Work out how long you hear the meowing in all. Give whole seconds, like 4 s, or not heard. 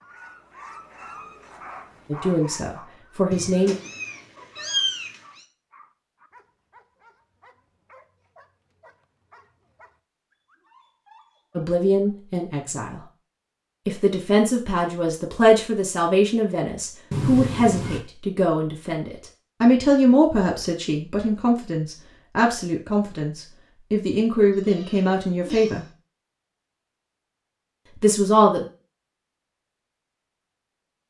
4 s.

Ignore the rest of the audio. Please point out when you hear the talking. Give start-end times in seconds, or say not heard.
2.1-3.8, 11.6-13.0, 13.8-25.9, 28.0-28.6.